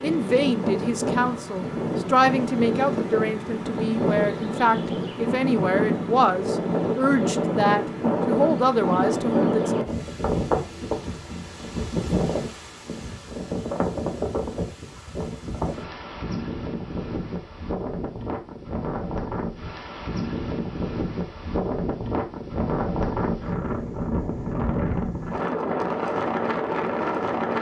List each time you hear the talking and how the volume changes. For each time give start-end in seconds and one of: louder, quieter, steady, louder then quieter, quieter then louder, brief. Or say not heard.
0.0-9.7 steady.